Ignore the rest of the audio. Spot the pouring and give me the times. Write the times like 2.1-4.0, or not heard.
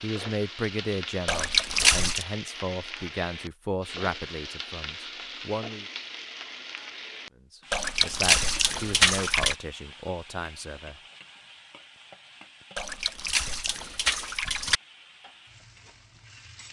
1.2-2.2, 7.7-9.6, 12.8-14.8.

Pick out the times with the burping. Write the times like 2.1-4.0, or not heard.
not heard.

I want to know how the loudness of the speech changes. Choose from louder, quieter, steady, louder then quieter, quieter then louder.
quieter.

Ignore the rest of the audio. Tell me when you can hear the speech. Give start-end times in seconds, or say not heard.
0.0-5.8, 7.5-10.9.